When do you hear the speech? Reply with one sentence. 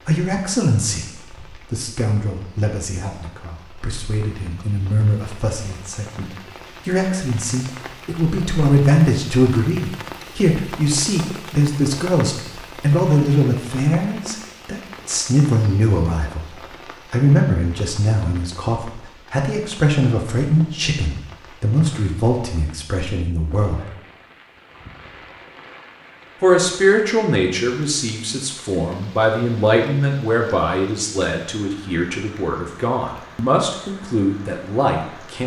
The speech can be heard from 0.1 to 23.9 s and from 26.4 to 35.4 s.